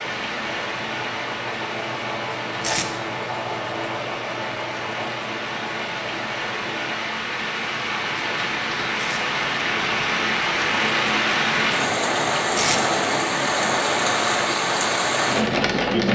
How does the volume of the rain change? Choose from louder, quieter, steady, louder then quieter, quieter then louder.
louder.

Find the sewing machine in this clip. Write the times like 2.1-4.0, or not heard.
0.0-7.1.